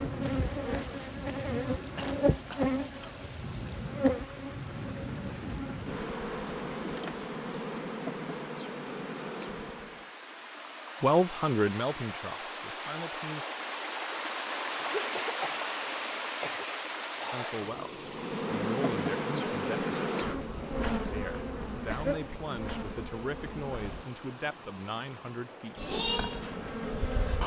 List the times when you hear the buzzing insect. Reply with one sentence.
You can hear the buzzing insect from 0.0 to 10.1 s and from 18.0 to 27.4 s.